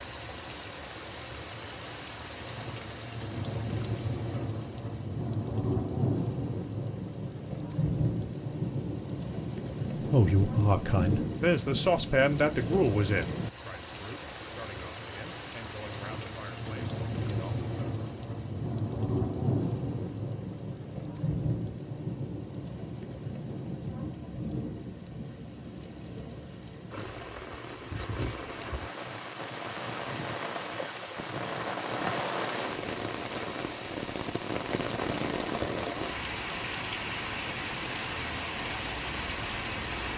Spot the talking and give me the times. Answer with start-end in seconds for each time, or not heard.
10.1-17.6.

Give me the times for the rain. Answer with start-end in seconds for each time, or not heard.
0.0-40.1.